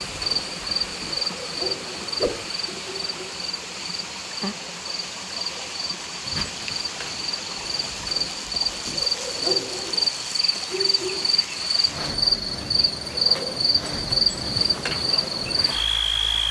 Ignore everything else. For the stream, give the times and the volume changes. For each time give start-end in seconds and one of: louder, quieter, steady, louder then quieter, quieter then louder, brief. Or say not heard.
0.0-16.4 steady.